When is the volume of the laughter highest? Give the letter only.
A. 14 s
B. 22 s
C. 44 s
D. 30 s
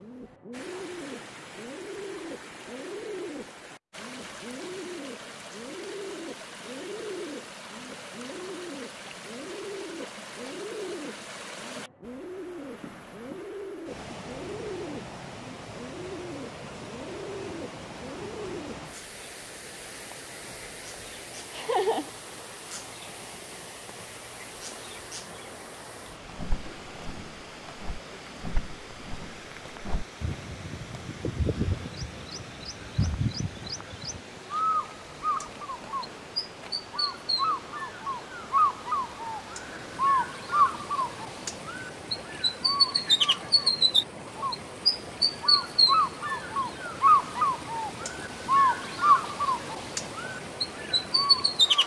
B.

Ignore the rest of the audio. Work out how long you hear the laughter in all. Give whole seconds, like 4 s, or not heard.
2 s.